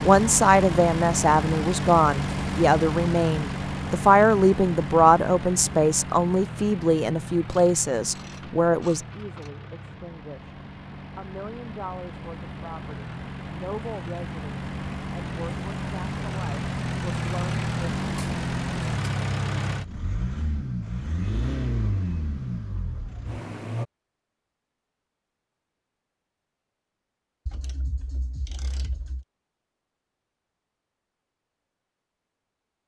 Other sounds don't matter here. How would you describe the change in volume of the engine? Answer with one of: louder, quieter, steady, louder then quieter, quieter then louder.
quieter then louder.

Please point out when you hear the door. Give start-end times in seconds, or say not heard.
not heard.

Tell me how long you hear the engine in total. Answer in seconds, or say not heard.
24 s.